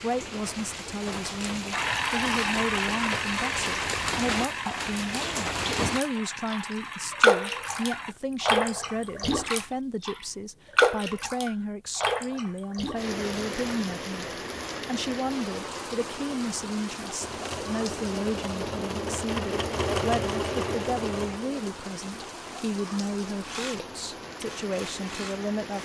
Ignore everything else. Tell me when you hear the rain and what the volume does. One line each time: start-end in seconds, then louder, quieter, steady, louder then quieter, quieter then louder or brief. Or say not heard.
0.0-25.8 louder then quieter.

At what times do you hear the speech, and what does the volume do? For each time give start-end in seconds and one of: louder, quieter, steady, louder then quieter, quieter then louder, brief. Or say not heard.
0.0-25.8 steady.